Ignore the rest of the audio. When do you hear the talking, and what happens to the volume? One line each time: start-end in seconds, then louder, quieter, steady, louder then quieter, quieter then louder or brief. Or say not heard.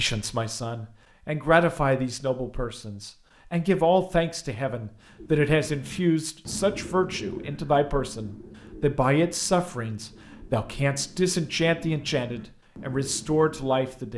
0.0-14.1 steady.